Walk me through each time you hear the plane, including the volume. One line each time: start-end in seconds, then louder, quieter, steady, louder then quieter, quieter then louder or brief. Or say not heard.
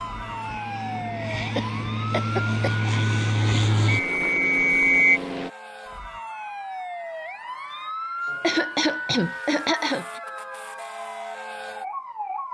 0.0-5.5 louder then quieter.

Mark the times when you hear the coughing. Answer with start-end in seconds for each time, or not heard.
1.6-2.8, 8.3-10.2.